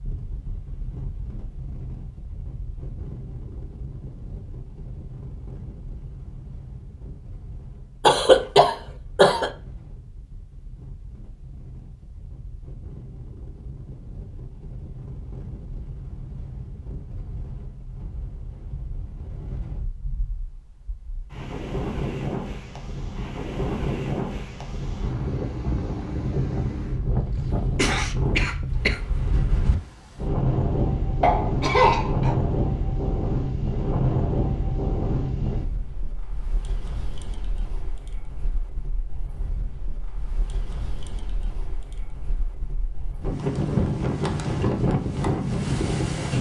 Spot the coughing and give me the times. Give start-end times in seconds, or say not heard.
8.0-9.5, 27.4-29.0, 31.2-32.4.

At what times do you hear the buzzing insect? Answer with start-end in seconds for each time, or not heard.
not heard.